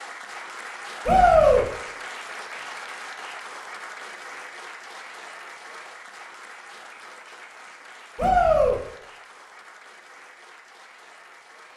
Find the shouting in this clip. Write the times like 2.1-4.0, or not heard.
1.1-1.6, 8.2-8.8.